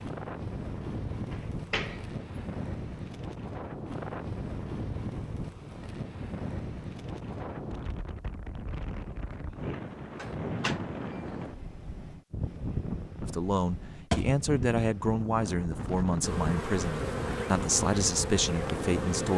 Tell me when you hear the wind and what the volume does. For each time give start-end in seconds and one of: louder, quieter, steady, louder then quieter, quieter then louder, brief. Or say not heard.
0.0-19.3 steady.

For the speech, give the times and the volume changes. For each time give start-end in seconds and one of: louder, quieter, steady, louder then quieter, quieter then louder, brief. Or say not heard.
13.2-19.3 steady.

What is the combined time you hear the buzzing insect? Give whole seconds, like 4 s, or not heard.
3 s.